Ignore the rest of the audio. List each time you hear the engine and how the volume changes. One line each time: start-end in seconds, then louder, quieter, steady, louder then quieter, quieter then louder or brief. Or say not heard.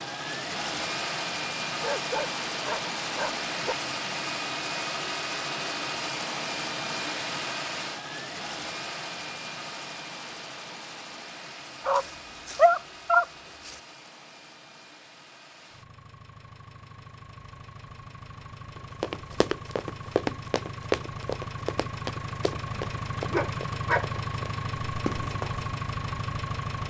0.0-26.8 quieter then louder.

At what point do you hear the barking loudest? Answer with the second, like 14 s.
13 s.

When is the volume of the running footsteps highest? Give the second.
21 s.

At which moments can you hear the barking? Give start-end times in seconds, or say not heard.
1.8-3.8, 11.8-13.8, 22.6-24.1.